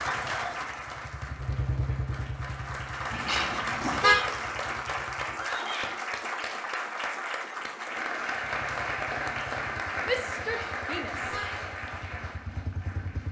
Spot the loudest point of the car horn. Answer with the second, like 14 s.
4 s.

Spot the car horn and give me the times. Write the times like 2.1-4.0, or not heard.
3.1-4.2, 10.4-11.7.